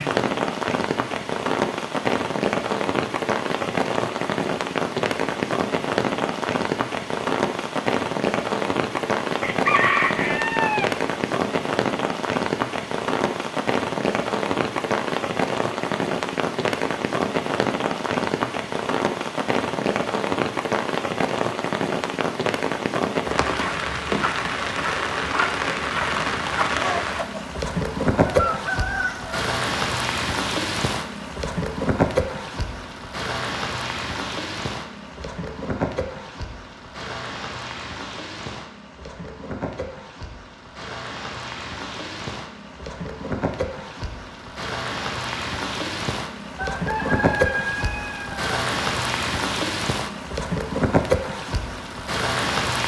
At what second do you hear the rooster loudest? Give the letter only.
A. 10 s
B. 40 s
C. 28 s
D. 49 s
A.